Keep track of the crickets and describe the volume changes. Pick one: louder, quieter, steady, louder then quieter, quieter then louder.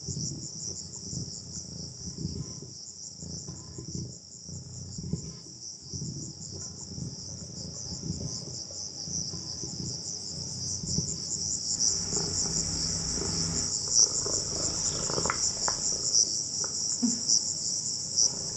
louder.